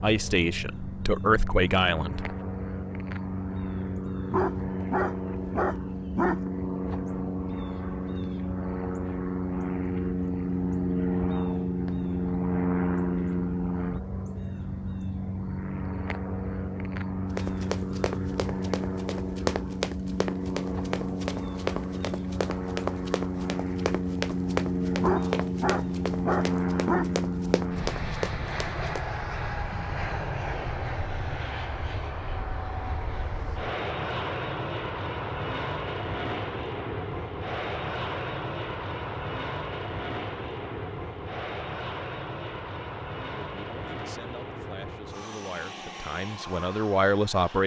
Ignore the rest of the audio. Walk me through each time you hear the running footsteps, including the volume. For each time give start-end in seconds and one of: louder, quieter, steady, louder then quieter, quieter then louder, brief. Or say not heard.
17.4-29.0 steady.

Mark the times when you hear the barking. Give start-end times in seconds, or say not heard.
4.3-6.4, 25.0-27.1.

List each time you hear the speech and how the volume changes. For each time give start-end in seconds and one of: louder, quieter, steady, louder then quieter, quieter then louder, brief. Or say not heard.
0.0-2.4 brief
43.4-47.6 louder.